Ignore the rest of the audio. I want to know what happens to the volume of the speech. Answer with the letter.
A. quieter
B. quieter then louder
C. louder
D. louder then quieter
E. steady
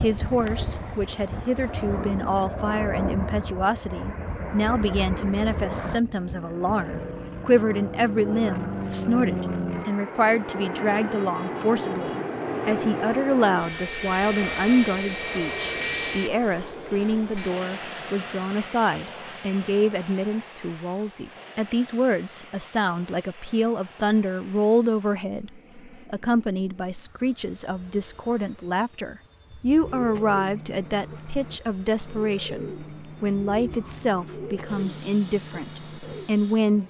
E.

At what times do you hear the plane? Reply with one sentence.
You can hear the plane from 0.0 to 36.8 s.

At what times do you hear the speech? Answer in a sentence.
You can hear the speech from 0.0 to 36.8 s.